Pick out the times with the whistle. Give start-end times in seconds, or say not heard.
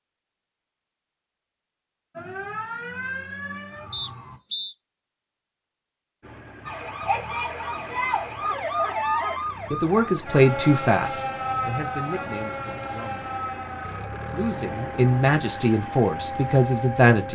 3.9-4.8.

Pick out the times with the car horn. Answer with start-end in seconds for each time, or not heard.
not heard.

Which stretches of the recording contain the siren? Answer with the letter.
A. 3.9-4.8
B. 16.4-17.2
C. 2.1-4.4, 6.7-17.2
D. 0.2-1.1
C.